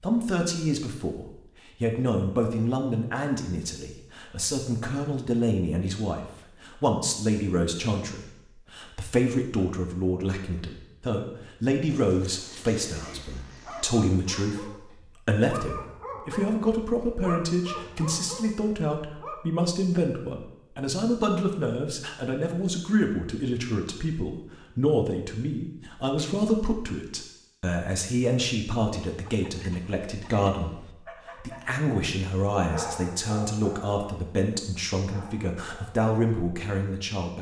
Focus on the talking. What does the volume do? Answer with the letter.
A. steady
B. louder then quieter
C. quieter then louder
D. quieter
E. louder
A.